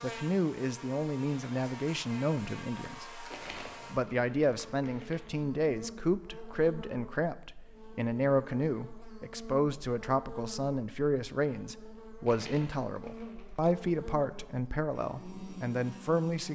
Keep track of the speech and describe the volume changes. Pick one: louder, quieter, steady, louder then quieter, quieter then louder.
steady.